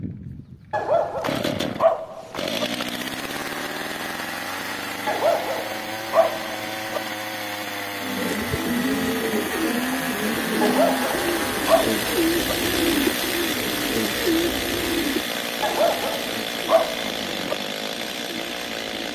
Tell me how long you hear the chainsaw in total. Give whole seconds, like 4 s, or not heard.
19 s.